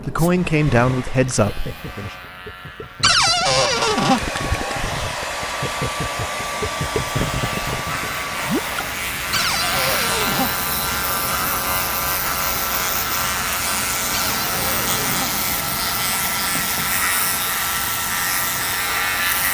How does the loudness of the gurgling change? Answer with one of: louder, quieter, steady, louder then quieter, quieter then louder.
louder.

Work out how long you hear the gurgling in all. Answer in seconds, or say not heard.
8 s.